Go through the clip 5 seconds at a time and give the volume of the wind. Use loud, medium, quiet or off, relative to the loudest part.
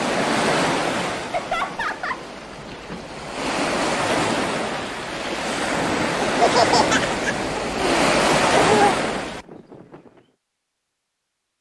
loud, loud, off.